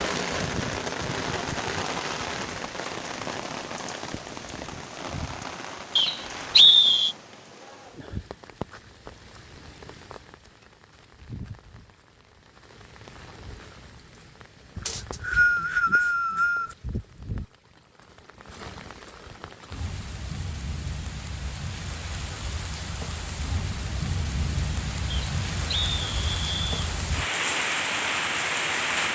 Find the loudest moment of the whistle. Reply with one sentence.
The volume of the whistle peaks at 7 seconds.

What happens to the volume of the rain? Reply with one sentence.
The loudness of the rain goes down, then up.